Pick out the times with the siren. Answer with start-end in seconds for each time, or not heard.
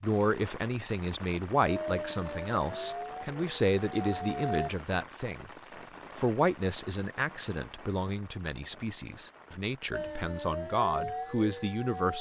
1.6-4.7, 9.9-12.1.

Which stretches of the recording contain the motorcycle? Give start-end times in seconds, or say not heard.
not heard.